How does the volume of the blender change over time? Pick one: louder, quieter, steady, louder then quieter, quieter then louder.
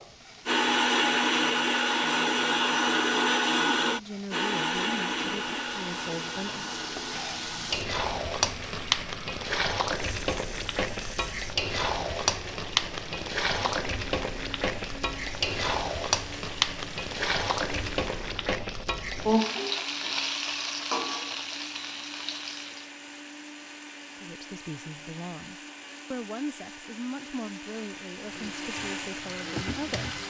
quieter.